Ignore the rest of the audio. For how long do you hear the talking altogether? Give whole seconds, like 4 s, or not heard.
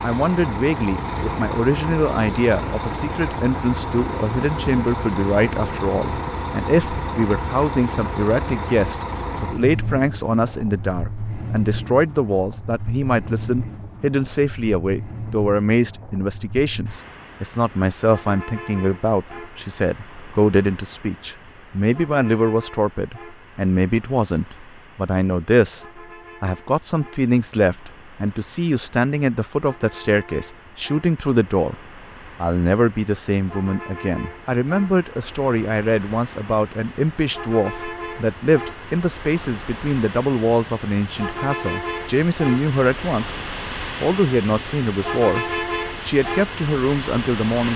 46 s.